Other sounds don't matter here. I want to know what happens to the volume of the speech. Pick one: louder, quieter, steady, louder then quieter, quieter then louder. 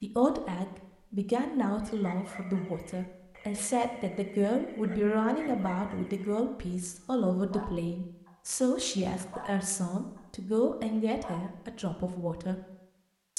steady.